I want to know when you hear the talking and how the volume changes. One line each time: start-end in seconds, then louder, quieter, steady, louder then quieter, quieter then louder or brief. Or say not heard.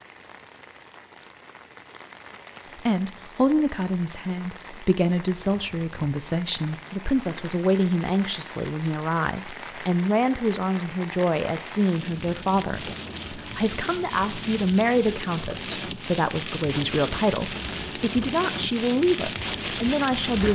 2.8-20.4 steady.